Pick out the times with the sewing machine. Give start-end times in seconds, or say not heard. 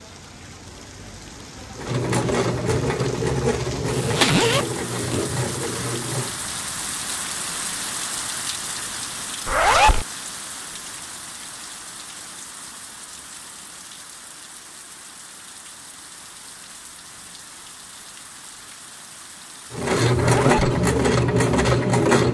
1.8-6.5, 19.7-22.2.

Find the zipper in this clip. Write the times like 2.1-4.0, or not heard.
3.9-5.3, 9.4-10.1, 20.1-20.8.